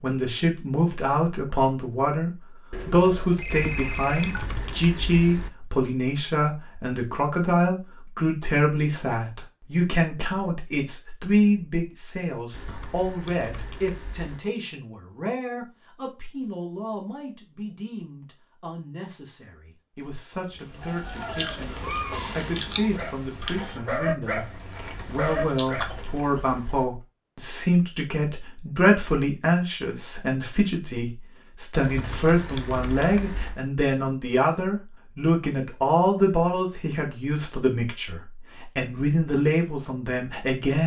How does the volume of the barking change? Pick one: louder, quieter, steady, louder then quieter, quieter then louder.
quieter then louder.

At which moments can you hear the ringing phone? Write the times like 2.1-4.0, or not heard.
2.7-4.5.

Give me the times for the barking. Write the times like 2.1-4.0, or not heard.
20.8-26.0.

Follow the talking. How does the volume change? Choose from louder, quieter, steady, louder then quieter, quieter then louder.
quieter then louder.